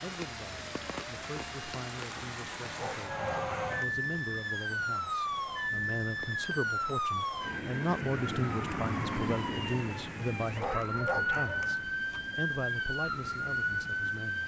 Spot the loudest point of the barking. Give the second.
11 s.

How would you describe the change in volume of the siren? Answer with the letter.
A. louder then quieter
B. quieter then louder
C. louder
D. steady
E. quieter
C.